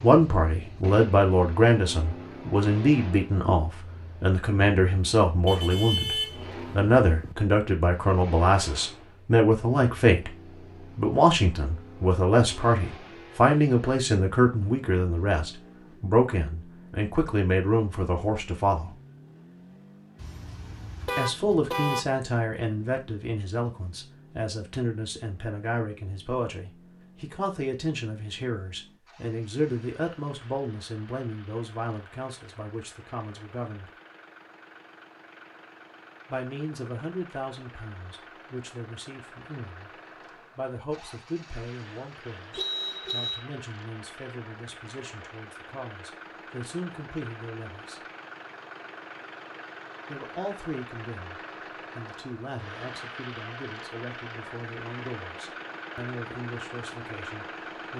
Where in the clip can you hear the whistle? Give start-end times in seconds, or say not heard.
not heard.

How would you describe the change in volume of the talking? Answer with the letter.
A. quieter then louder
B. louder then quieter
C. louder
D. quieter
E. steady
D.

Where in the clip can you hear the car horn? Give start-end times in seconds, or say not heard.
5.5-7.3, 20.2-22.0, 42.5-43.4.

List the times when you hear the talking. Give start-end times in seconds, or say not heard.
0.0-18.9, 21.1-33.9, 36.3-48.0, 50.0-57.9.